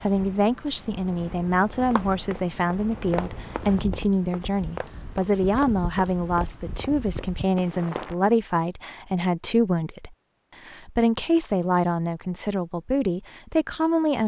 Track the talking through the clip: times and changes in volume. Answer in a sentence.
The talking can be heard from 0.0 to 14.2 s, at a steady volume.